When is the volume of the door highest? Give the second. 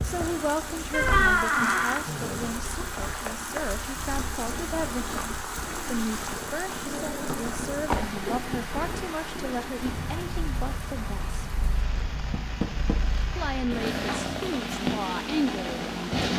1 s.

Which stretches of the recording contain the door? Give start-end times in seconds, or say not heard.
0.9-2.0, 7.2-8.8, 12.3-12.9.